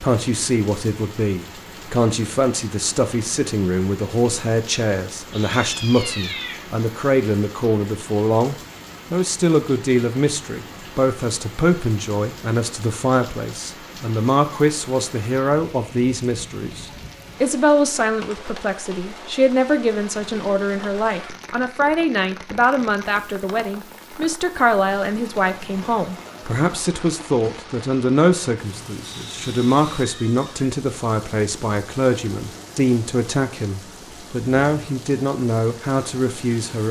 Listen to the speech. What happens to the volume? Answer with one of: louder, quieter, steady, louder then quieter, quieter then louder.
steady.